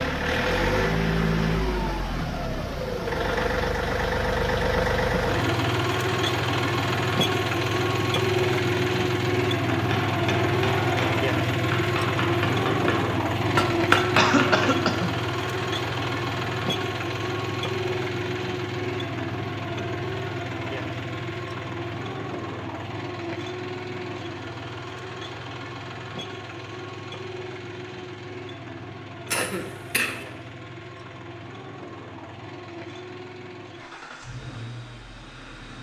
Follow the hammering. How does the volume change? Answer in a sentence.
The loudness of the hammering goes up.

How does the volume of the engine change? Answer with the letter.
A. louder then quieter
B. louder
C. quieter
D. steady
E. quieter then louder
C.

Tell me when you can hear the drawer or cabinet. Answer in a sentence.
The drawer or cabinet can't be heard in this clip.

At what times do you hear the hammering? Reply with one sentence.
The hammering can be heard from 9.8 to 14.7 s.